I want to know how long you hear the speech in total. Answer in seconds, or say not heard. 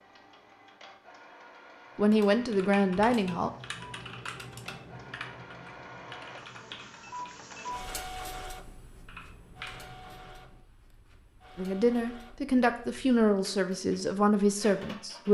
5 s.